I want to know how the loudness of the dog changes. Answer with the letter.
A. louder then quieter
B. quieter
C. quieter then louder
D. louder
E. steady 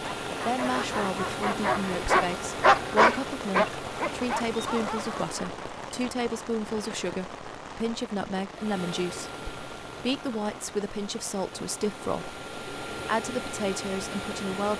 A.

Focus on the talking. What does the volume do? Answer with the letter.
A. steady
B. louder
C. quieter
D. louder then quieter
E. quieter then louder
A.